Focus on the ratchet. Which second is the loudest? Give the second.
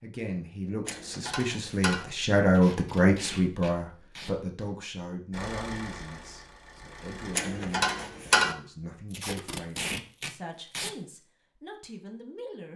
8 s.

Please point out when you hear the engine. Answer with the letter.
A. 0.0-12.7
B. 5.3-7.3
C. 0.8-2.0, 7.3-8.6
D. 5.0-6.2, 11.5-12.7
B.